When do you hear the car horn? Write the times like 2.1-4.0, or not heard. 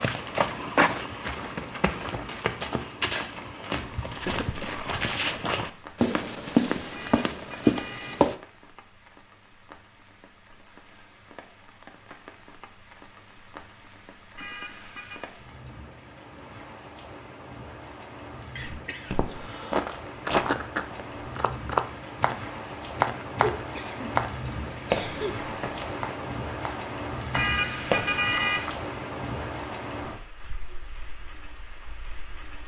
6.9-8.3, 14.3-15.3, 27.3-28.8.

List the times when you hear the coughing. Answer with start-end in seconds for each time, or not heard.
4.2-4.8, 18.6-19.9, 23.6-25.3.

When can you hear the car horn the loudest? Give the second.
28 s.